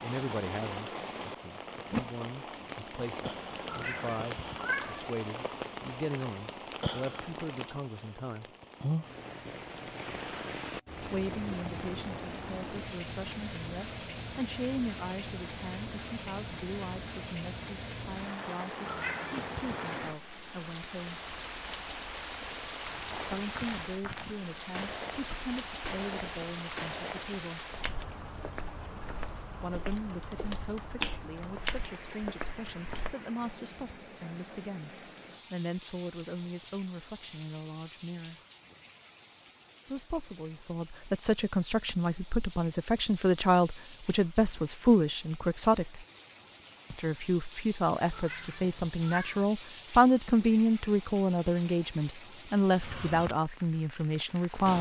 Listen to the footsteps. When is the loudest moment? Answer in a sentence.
The loudest moment of the footsteps is at 31 seconds.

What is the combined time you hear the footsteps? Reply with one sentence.
The footsteps can be heard for 10 seconds in total.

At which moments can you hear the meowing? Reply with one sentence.
You can hear the meowing from 3.6 to 5.0 s, from 18.9 to 19.6 s and from 48.1 to 49.5 s.